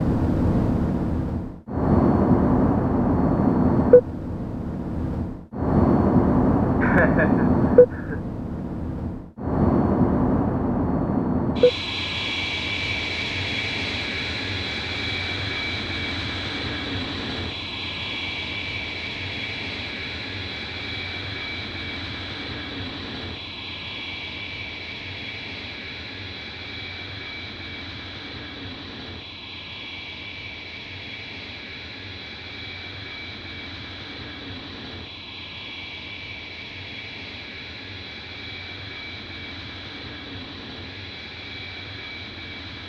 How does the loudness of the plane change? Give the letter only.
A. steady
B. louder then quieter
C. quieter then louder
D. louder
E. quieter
E.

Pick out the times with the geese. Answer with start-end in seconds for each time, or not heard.
not heard.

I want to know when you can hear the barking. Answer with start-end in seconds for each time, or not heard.
not heard.